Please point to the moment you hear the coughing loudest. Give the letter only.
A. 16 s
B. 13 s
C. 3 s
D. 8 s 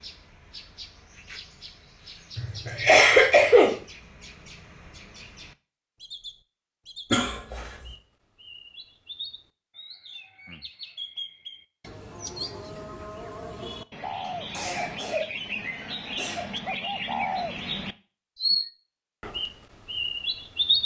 C.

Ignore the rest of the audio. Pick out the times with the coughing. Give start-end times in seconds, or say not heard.
2.4-3.8, 7.1-7.7, 14.2-16.4.